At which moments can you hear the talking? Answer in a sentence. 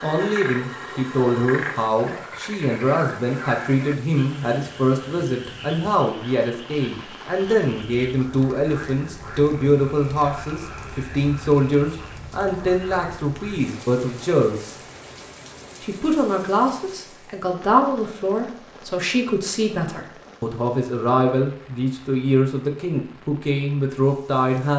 The talking can be heard from 0.0 to 14.8 s and from 15.8 to 24.7 s.